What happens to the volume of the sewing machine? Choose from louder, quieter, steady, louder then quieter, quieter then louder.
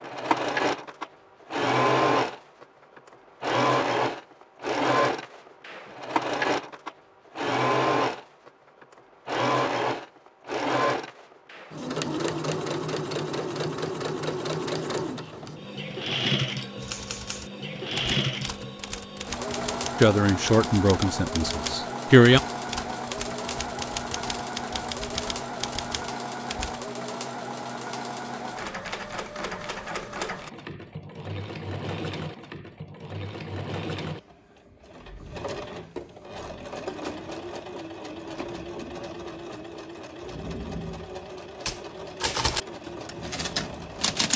quieter.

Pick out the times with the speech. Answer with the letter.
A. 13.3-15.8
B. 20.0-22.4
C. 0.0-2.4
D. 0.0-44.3
B.